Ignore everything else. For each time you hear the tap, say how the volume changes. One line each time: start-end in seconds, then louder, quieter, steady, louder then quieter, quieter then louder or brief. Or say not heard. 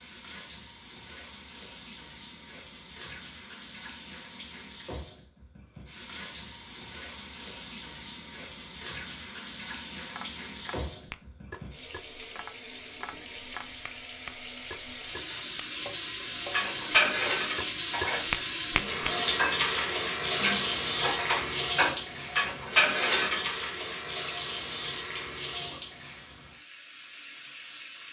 0.0-28.0 louder then quieter.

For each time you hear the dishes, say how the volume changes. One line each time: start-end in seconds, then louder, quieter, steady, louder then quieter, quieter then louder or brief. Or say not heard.
16.5-23.5 quieter then louder.